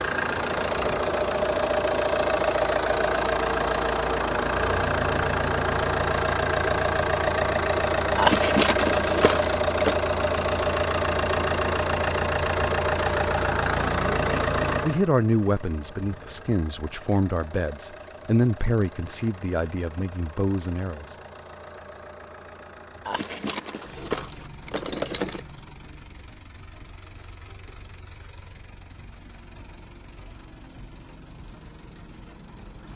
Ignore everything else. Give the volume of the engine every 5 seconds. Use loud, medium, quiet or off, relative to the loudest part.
loud, loud, loud, quiet, quiet, quiet, quiet.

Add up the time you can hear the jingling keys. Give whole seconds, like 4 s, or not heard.
4 s.